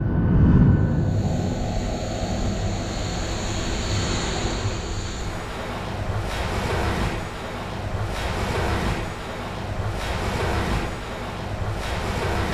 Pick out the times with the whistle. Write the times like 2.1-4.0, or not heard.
not heard.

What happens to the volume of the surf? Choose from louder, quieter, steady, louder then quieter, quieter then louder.
steady.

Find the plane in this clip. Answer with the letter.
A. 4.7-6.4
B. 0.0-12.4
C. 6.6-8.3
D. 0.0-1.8
D.